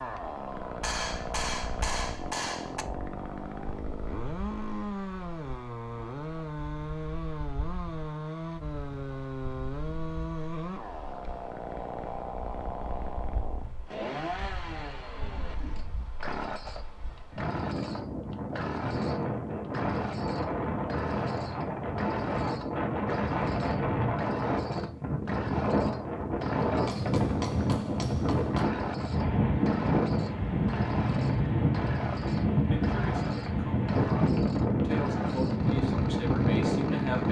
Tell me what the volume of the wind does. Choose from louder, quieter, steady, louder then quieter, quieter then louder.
louder.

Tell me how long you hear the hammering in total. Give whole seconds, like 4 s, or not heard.
4 s.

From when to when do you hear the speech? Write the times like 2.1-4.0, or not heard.
32.7-37.2.